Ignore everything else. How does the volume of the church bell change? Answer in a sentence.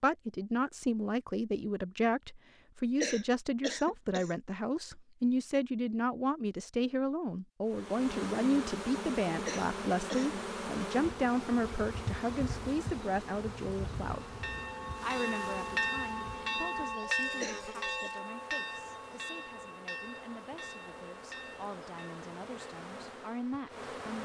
The loudness of the church bell goes down.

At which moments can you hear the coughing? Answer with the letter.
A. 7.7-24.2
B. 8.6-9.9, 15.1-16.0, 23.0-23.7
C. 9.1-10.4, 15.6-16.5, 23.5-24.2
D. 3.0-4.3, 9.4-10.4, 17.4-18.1
D.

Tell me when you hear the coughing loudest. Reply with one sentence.
The loudest moment of the coughing is at 3 seconds.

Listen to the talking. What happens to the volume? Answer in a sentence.
The volume of the talking goes down.